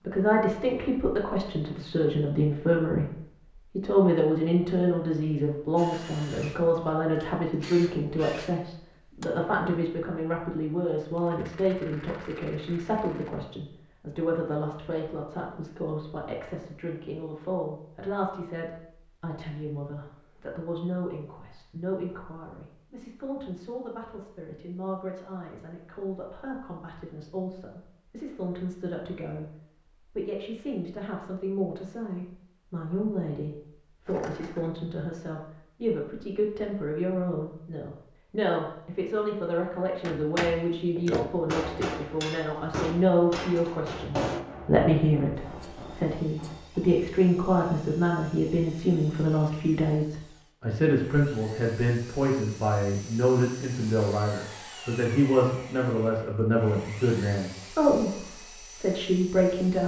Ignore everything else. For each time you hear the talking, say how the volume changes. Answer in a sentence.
The talking can be heard from 0.1 to 59.8 s, getting quieter then louder.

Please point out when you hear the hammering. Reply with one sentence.
You can hear the hammering from 40.0 to 47.0 s.